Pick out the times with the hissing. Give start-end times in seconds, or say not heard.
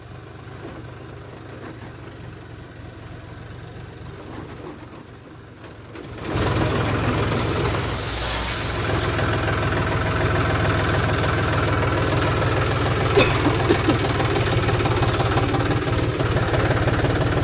7.2-9.2.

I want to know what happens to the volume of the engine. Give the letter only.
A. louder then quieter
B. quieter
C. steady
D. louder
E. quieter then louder
D.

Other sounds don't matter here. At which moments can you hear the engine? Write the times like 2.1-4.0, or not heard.
0.0-17.3.